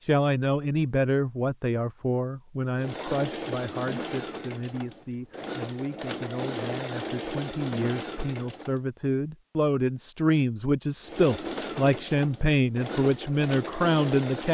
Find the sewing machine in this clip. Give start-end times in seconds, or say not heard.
2.8-8.8, 11.0-14.4.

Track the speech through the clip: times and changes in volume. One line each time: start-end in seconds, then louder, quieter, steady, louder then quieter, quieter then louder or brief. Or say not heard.
0.1-14.4 quieter then louder.